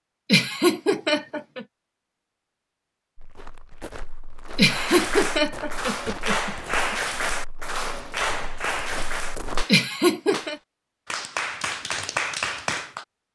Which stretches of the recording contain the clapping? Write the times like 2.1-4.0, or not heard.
4.7-13.1.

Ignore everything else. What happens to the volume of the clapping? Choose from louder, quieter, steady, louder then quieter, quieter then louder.
quieter then louder.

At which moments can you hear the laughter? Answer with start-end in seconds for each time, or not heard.
0.3-1.6, 4.5-7.0, 9.7-10.6.